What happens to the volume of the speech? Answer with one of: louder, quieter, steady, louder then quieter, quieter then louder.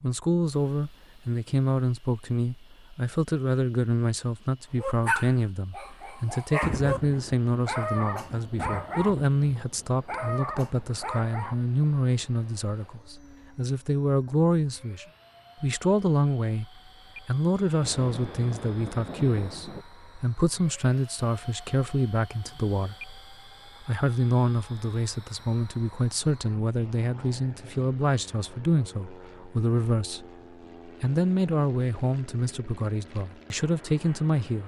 steady.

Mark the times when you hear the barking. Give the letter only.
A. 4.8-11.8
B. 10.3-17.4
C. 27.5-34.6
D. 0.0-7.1
A.